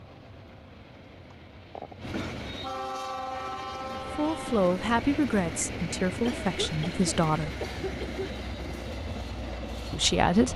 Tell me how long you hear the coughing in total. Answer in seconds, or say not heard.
3 s.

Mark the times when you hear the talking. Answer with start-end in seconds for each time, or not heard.
3.9-7.5, 9.9-10.5.